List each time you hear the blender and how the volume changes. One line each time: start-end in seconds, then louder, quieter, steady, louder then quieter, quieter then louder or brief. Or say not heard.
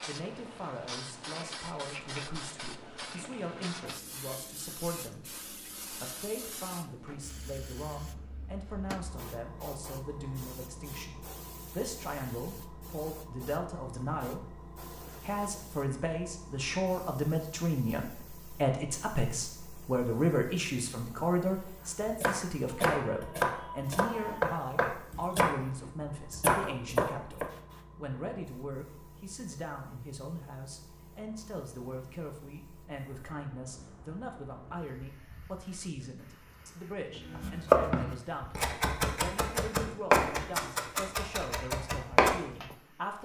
not heard.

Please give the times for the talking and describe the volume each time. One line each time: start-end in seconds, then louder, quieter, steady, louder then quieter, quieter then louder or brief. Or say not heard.
0.1-14.6 louder
15.2-43.2 quieter.